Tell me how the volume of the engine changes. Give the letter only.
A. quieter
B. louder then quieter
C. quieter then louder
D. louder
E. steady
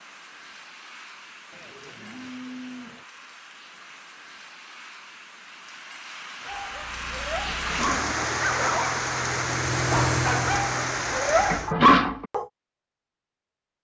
D.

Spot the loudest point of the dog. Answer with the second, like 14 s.
12 s.